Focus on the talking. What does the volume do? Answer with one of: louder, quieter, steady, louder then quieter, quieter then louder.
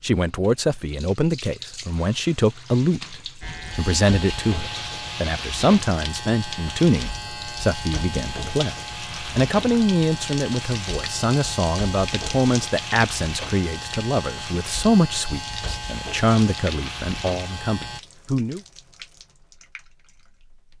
steady.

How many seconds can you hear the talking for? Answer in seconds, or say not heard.
18 s.